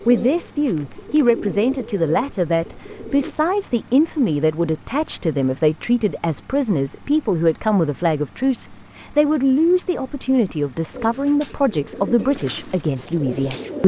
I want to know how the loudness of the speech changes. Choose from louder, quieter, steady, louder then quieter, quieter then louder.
steady.